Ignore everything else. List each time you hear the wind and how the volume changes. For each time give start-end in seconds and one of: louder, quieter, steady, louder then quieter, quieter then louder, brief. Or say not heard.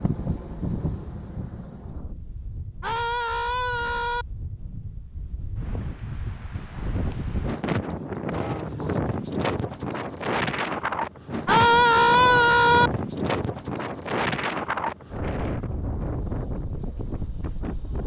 0.0-18.0 louder.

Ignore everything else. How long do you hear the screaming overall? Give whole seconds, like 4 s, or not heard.
3 s.